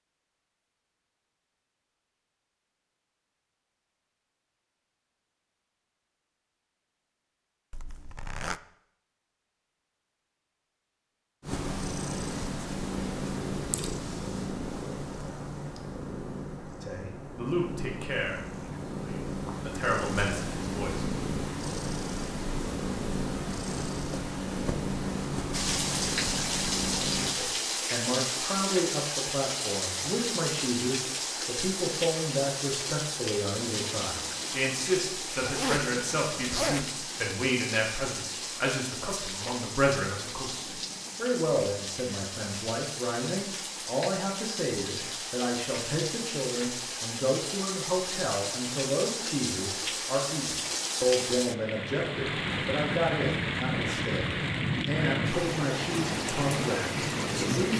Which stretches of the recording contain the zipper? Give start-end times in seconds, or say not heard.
7.7-8.6, 35.4-36.9.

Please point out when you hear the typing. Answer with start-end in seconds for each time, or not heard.
not heard.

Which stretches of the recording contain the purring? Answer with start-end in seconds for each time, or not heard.
11.4-27.4.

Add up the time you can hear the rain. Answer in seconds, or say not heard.
32 s.